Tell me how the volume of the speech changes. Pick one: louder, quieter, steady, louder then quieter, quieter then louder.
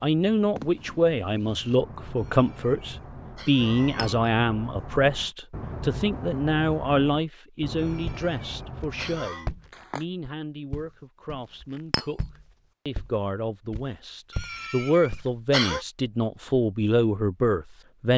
quieter then louder.